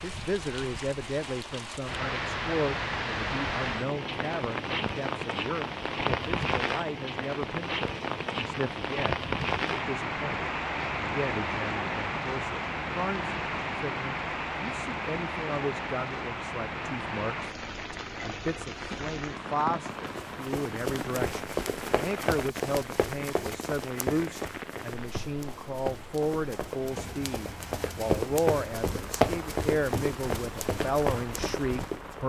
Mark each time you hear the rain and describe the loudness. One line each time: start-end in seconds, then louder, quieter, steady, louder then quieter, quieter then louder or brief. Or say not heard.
0.0-32.2 quieter.